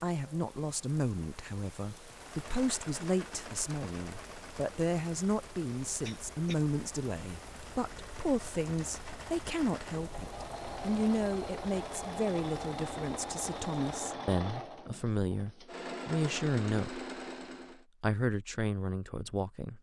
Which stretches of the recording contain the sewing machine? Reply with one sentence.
The sewing machine can be heard from 2.0 to 17.9 s.